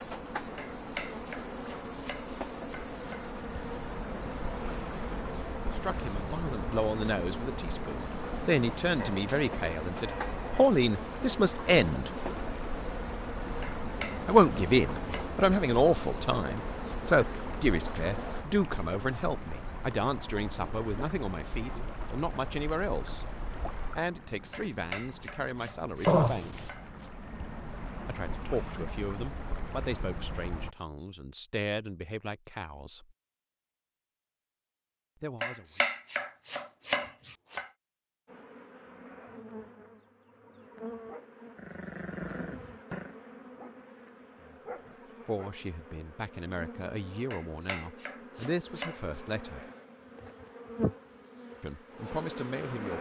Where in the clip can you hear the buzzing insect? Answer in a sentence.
The buzzing insect can be heard from 0.0 to 18.4 s and from 38.2 to 52.9 s.